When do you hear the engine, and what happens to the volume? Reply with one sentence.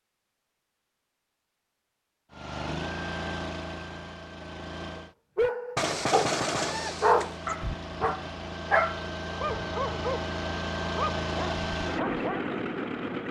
You can hear the engine briefly from 2.3 to 5.2 s; and from 6.7 to 13.2 s, getting louder.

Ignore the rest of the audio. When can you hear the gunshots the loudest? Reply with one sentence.
The loudest moment of the gunshots is at 6 seconds.